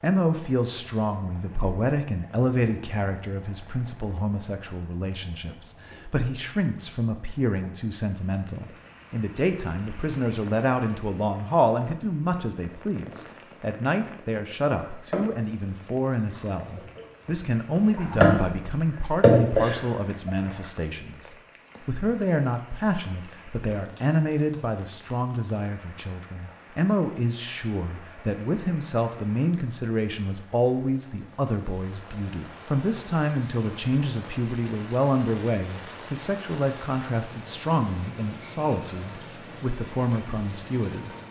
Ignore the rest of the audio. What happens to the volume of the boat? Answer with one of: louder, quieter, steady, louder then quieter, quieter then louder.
quieter then louder.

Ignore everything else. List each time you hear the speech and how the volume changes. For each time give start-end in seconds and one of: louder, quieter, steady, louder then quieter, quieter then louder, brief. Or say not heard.
0.0-41.1 steady.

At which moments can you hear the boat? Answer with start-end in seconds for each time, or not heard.
14.8-20.3.